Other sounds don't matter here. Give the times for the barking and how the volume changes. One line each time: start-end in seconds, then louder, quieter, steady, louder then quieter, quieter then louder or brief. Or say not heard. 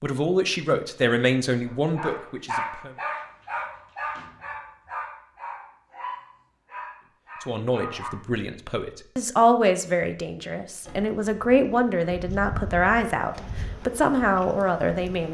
1.6-8.2 quieter.